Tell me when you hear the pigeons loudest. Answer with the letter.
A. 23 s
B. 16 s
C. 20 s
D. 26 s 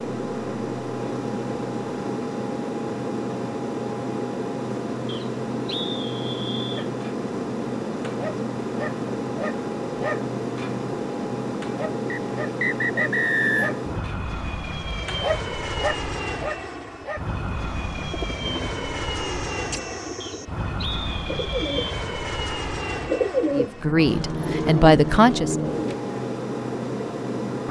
A.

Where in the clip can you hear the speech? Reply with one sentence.
You can hear the speech from 23.6 to 25.7 s.